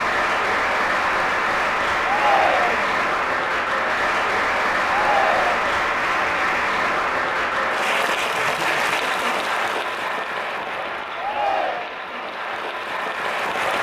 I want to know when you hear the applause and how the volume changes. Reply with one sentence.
You can hear the applause from 0.0 to 13.7 s, getting quieter.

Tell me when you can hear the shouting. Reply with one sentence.
The shouting can be heard from 2.0 to 3.0 s, from 4.8 to 5.7 s and from 11.2 to 11.9 s.